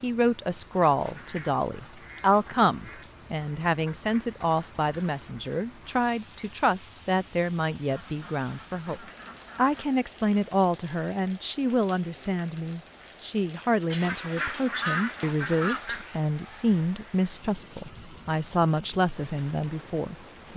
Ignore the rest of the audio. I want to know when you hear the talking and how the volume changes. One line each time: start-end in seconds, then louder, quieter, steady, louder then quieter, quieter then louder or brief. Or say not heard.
0.0-20.5 steady.